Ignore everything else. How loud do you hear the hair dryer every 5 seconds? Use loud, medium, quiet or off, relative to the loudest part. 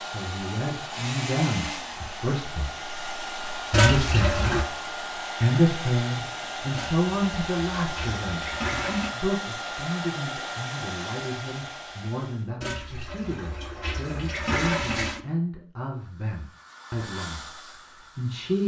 loud, loud, loud, medium.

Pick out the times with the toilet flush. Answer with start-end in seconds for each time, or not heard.
3.7-4.7, 6.7-9.1, 12.6-15.2.